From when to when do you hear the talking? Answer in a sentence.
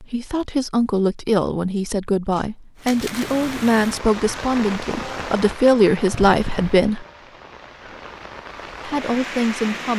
The talking can be heard from 0.0 to 7.0 s and from 8.8 to 9.9 s.